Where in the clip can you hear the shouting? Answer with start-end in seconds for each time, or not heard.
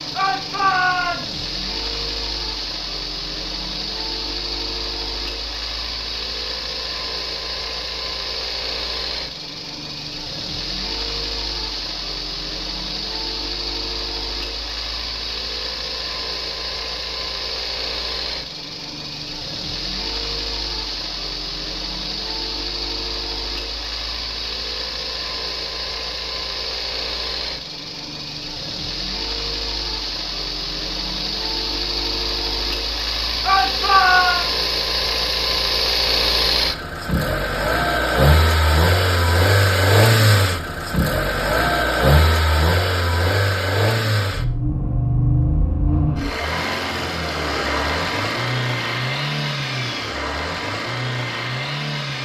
0.1-1.4, 33.4-34.4.